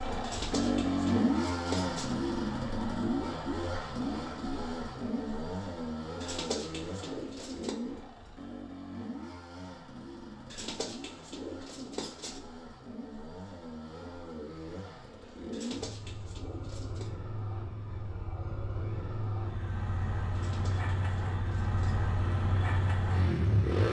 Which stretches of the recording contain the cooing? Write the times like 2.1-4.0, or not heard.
0.2-2.1, 6.2-7.8, 10.5-12.4, 15.5-17.1, 20.4-22.0.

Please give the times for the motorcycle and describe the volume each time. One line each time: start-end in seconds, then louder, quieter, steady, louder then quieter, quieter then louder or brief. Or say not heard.
0.0-23.8 quieter then louder.